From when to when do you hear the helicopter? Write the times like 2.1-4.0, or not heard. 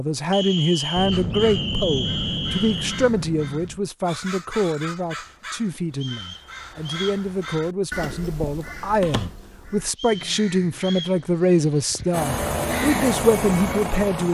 12.1-14.2.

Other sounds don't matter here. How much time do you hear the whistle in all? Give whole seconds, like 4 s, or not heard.
5 s.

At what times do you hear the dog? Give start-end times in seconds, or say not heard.
not heard.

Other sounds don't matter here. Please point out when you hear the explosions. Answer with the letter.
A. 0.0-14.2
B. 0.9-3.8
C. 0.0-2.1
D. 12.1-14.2
B.